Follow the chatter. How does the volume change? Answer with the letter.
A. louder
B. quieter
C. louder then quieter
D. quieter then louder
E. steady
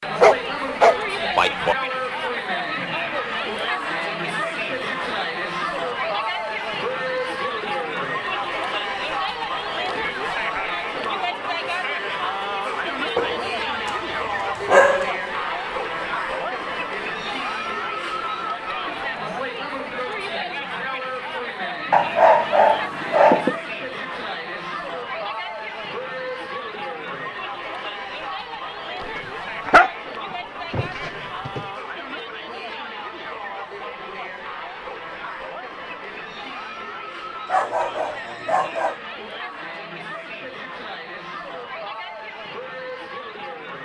B.